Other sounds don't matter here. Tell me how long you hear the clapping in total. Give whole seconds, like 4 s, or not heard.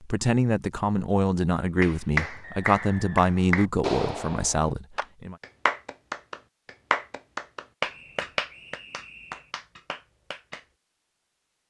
9 s.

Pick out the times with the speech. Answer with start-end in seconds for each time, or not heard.
0.0-5.3.